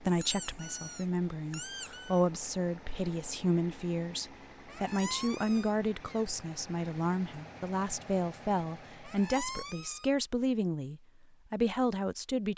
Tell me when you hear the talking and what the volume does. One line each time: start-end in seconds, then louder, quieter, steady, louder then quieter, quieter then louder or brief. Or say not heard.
0.0-12.5 steady.